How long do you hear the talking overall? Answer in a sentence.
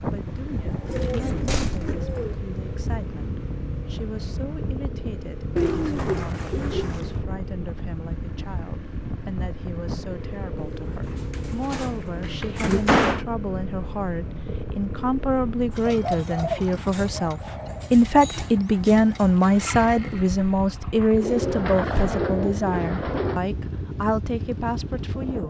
You can hear the talking for 25 seconds altogether.